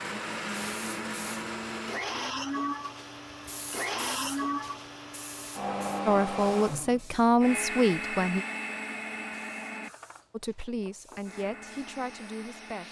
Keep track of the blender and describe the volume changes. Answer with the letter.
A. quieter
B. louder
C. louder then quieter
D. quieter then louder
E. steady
A.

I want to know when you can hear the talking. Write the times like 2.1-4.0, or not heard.
6.0-8.4, 10.3-12.8.